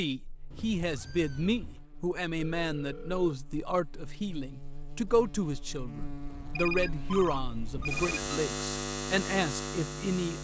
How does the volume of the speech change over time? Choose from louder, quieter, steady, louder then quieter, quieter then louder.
steady.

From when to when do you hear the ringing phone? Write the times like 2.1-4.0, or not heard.
2.4-3.4, 6.5-8.4.